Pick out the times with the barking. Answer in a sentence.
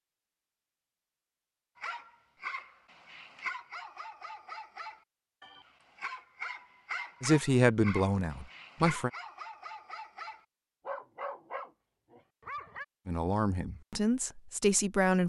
You can hear the barking from 1.8 to 12.8 s.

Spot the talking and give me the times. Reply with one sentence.
You can hear the talking from 7.2 to 9.1 s and from 13.1 to 15.2 s.